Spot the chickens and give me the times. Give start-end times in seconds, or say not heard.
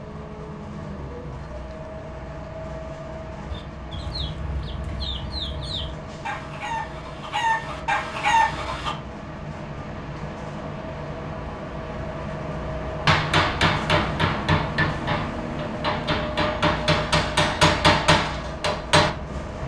3.5-8.9.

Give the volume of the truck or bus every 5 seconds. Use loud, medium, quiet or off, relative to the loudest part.
medium, medium, loud, loud.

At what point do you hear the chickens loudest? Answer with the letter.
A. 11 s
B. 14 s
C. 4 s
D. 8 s
D.